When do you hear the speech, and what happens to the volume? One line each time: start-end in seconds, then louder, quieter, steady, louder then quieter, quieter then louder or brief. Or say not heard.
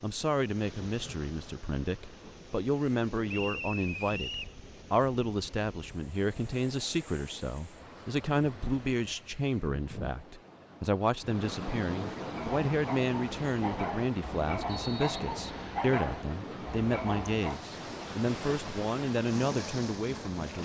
0.0-20.5 steady.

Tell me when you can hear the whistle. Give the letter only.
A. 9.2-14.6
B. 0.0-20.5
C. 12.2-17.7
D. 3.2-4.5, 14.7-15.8
D.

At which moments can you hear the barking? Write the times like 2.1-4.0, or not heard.
12.2-17.7.